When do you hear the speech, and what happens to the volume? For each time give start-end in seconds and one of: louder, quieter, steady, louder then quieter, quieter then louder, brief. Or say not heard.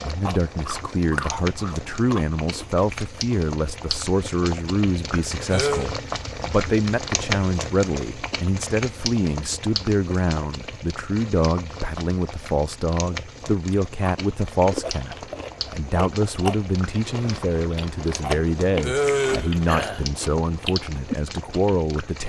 0.0-22.2 steady.